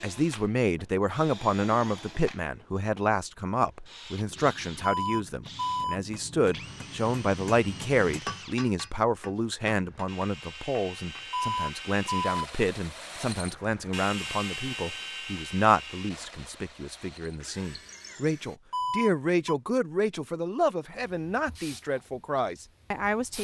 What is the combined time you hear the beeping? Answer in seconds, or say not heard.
3 s.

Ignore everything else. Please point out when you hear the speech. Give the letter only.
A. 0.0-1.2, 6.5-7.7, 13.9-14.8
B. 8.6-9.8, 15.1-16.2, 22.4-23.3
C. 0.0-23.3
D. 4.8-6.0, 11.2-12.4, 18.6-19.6
C.